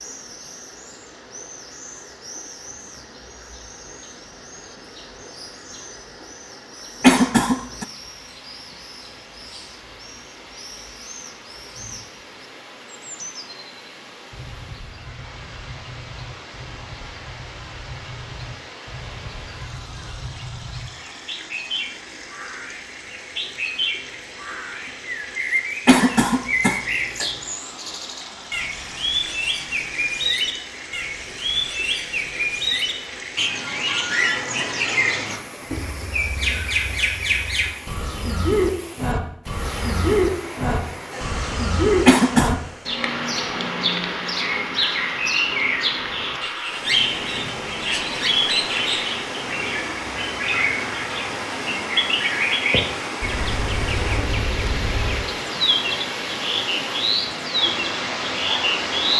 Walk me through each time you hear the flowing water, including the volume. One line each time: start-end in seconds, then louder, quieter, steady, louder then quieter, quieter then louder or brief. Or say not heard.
0.0-59.1 louder.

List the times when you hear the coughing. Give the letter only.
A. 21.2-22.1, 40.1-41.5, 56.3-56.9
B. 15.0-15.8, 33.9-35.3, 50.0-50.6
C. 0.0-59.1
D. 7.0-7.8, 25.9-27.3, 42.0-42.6
D.